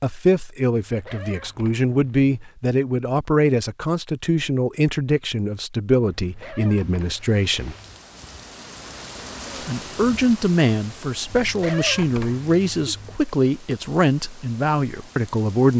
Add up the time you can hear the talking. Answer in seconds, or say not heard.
14 s.